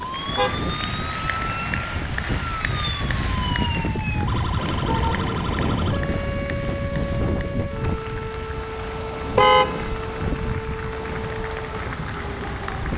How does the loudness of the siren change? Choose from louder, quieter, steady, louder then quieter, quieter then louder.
steady.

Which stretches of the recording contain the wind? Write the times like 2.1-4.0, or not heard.
0.0-12.9.